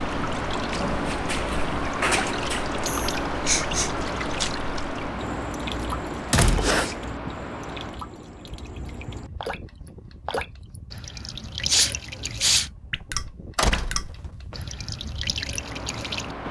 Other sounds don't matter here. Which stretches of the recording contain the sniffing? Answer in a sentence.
The sniffing can be heard from 2.9 to 3.9 s, from 6.6 to 7.3 s and from 11.7 to 12.7 s.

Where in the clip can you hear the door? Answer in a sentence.
The door can be heard from 0.8 to 2.6 s, from 5.8 to 6.8 s and from 13.6 to 14.6 s.